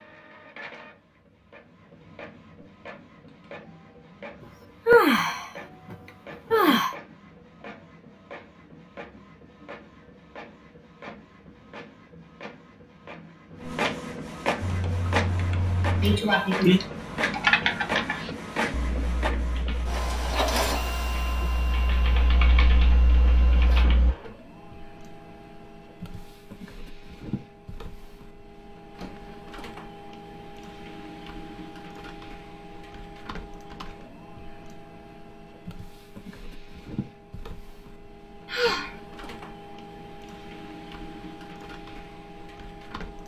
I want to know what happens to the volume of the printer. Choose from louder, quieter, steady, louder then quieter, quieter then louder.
louder then quieter.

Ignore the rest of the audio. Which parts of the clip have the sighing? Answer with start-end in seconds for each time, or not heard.
4.8-7.0, 16.0-16.8, 38.5-39.0.